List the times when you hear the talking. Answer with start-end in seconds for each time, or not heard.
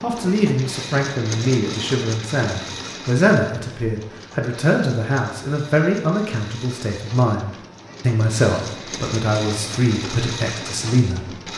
0.0-11.3.